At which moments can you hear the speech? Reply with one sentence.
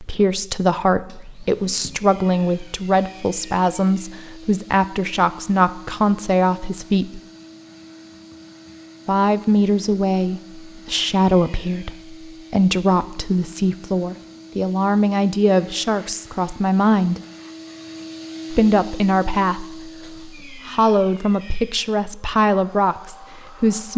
You can hear the speech from 0.0 to 7.2 s, from 9.1 to 17.2 s and from 18.5 to 23.9 s.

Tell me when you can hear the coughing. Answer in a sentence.
You can't hear the coughing here.